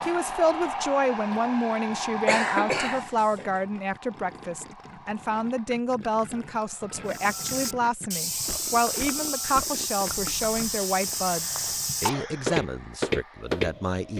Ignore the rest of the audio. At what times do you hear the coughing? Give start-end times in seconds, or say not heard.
2.2-3.6, 11.2-12.6.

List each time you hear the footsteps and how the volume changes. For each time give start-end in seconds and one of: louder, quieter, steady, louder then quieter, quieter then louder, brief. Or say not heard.
0.0-1.6 brief
7.1-14.1 louder.